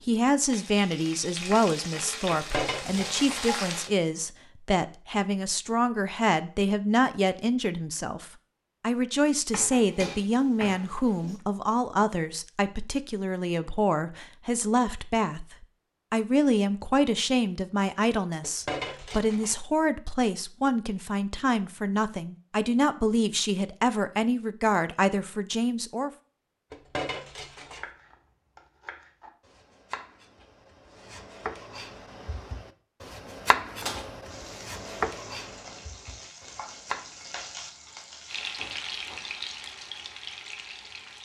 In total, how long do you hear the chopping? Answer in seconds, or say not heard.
10 s.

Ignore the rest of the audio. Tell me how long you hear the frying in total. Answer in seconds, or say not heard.
11 s.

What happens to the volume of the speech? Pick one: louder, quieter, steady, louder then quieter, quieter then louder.
steady.